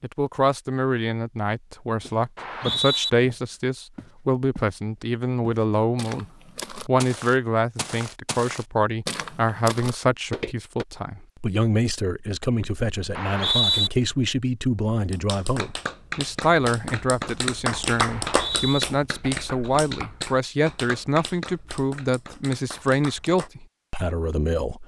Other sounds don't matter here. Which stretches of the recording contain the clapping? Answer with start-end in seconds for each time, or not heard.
14.9-23.5.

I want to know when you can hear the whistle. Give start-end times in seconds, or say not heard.
2.4-3.1, 13.2-13.9, 18.1-18.9.